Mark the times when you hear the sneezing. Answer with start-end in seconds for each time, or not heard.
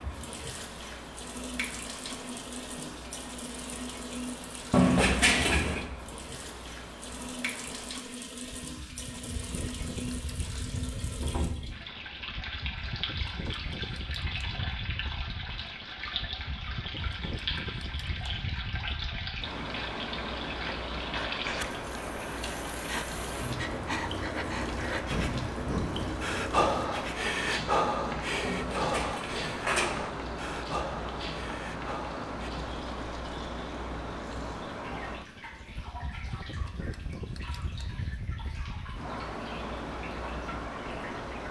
not heard.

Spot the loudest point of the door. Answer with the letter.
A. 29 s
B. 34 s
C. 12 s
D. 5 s
D.